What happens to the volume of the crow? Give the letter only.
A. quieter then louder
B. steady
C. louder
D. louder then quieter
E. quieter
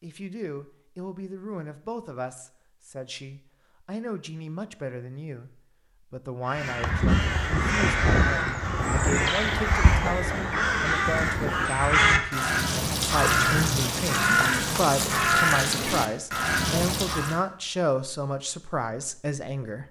B.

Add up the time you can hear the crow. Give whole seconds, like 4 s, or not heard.
11 s.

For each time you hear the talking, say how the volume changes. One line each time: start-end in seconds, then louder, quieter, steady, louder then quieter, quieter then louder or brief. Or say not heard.
0.0-19.8 louder.